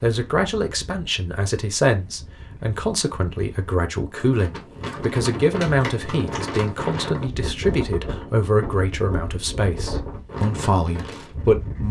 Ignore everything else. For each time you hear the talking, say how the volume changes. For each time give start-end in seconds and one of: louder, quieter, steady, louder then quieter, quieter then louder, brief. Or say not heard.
0.0-11.8 steady.